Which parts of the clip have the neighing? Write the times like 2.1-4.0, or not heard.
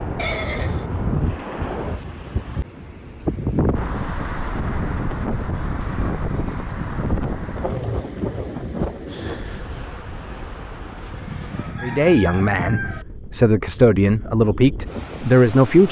0.1-1.6, 5.6-7.3, 11.1-13.1.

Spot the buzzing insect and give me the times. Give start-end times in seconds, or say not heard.
9.1-11.8.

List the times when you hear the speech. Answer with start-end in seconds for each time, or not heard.
11.8-15.8.